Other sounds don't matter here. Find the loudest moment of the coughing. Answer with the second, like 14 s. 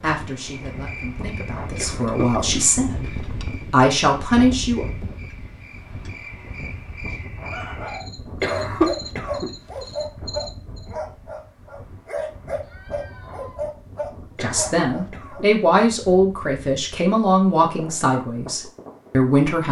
9 s.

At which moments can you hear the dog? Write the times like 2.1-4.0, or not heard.
7.5-15.4.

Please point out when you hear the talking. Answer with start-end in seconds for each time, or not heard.
0.0-4.8, 14.4-19.6.